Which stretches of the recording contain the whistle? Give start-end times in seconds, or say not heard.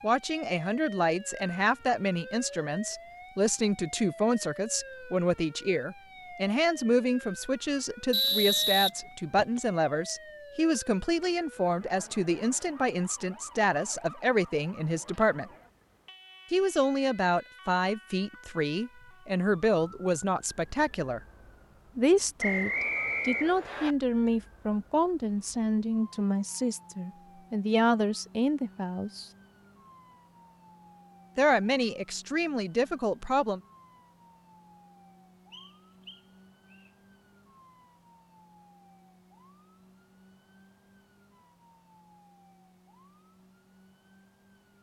8.1-9.6, 22.4-23.9, 35.5-36.9.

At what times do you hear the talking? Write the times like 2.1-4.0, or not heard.
0.0-15.5, 16.5-21.2, 21.9-29.2, 31.4-33.6.